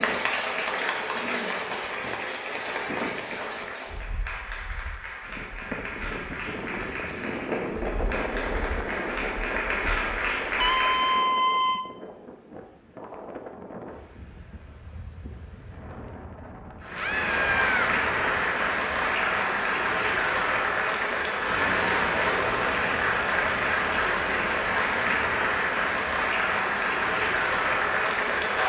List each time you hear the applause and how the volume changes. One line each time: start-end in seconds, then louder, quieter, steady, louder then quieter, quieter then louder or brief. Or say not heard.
0.0-11.3 quieter then louder
16.8-28.6 steady.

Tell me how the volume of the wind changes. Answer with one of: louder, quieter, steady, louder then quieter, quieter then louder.
louder then quieter.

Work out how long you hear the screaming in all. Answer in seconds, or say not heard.
2 s.